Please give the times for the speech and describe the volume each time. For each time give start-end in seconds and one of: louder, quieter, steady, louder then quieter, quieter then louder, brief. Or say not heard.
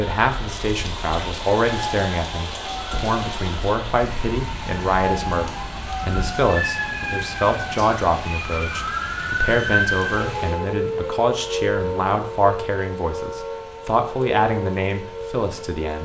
0.0-15.9 steady.